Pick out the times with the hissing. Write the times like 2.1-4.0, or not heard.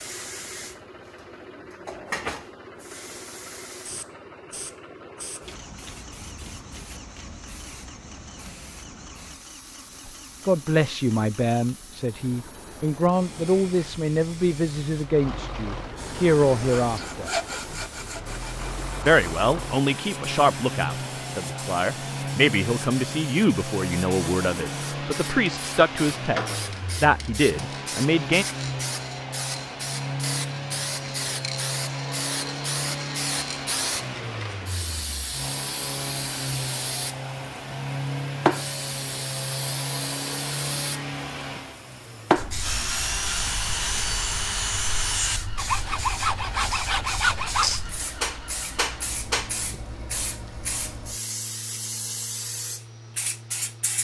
0.0-53.9.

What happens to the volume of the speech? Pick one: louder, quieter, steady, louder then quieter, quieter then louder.
steady.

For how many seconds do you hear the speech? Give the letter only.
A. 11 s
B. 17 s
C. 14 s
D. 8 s
B.